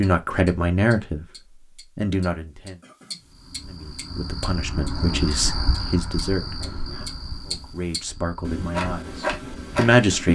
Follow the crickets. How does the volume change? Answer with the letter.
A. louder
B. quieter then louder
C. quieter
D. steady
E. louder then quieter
E.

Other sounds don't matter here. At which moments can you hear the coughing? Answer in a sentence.
You can hear the coughing from 2.8 to 3.2 s and from 6.5 to 7.2 s.